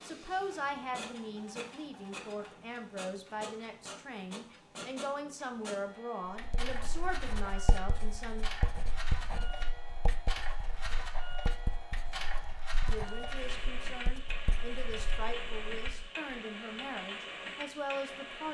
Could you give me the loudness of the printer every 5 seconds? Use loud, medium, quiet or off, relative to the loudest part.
medium, loud, loud, loud.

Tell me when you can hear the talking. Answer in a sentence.
You can hear the talking from 0.0 to 8.5 s and from 12.8 to 18.4 s.